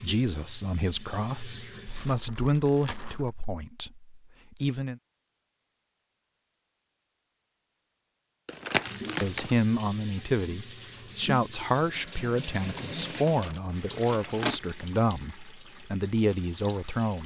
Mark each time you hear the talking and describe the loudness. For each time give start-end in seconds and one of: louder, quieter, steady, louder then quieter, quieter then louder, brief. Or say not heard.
0.0-5.0 louder then quieter
9.2-17.2 steady.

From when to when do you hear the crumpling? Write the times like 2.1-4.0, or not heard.
1.9-3.4, 8.4-9.5, 12.9-14.6.